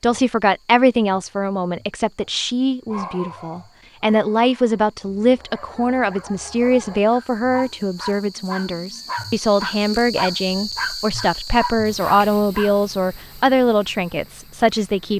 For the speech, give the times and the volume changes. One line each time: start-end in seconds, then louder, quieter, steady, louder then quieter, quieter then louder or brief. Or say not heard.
0.0-15.1 steady.